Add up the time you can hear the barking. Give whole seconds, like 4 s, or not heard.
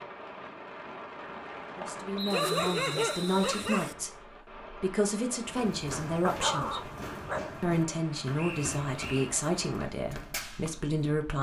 3 s.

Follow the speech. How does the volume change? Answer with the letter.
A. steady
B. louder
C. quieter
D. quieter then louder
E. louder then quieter
A.